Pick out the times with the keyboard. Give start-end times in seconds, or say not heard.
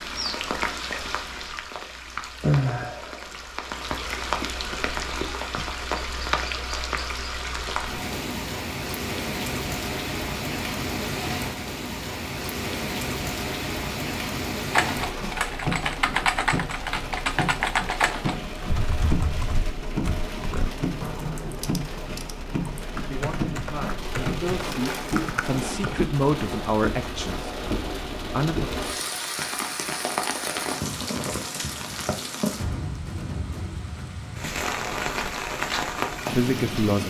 14.7-25.9.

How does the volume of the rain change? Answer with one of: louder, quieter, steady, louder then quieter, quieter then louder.
steady.